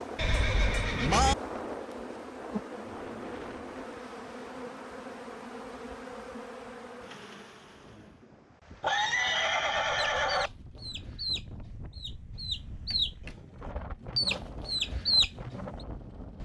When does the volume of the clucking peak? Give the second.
15 s.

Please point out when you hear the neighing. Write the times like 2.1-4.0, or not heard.
0.1-1.4, 8.8-10.5.